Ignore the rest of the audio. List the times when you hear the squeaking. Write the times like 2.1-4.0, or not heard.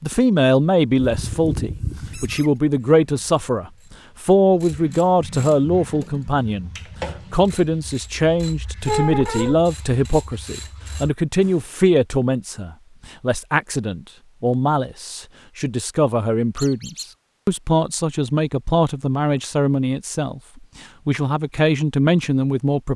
0.9-2.5, 8.8-9.6, 16.6-17.1.